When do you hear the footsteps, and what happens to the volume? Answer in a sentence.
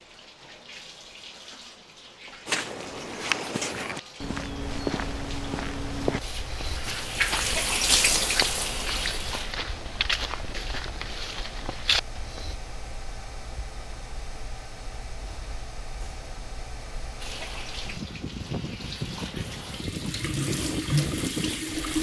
You can hear the footsteps from 2.5 to 12.6 s, at a steady volume.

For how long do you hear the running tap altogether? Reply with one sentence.
You can hear the running tap for 14 seconds altogether.